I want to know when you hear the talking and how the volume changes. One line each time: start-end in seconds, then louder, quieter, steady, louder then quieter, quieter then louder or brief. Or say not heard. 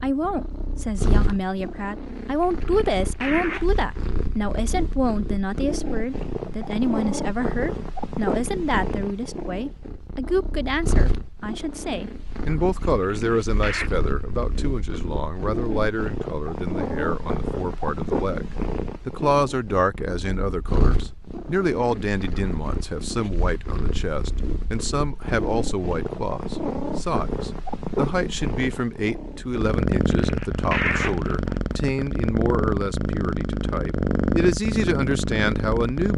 0.0-36.1 steady.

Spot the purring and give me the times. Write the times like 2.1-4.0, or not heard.
0.0-36.1.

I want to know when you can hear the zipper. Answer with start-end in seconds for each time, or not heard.
2.4-3.9, 13.0-13.9, 29.9-31.6.